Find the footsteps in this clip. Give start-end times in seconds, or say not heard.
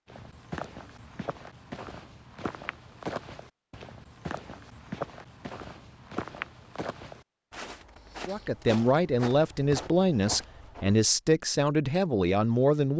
0.1-11.0.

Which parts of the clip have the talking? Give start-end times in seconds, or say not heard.
8.2-12.9.